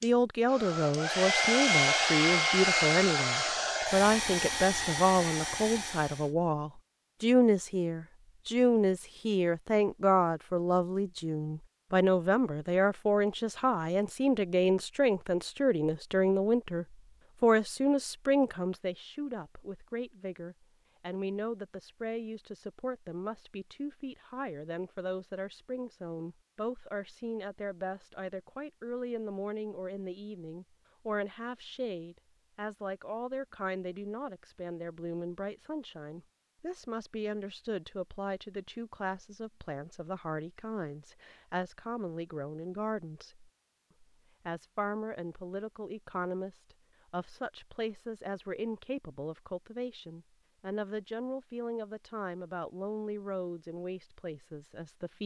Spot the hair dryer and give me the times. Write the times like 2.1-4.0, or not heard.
0.0-6.3.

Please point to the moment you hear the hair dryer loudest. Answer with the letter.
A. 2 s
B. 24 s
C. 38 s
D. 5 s
A.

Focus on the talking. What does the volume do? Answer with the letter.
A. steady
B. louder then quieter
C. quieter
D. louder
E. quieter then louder
C.